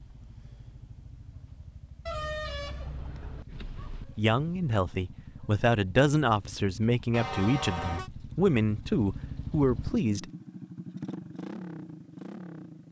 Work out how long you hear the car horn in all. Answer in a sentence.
You can hear the car horn for 3 seconds altogether.